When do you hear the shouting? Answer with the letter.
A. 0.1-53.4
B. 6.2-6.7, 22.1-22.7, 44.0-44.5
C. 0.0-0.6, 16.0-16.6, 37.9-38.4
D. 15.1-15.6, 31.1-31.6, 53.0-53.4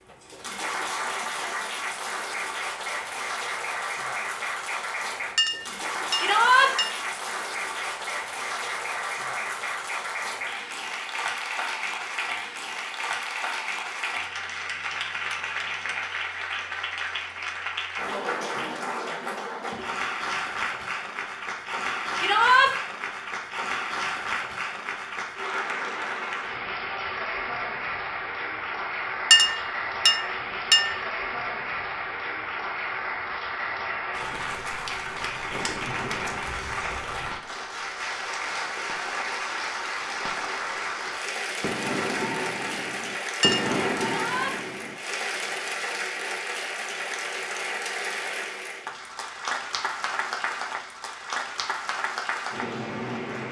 B.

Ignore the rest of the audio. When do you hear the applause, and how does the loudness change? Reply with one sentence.
You can hear the applause from 0.1 to 53.4 s, at a steady volume.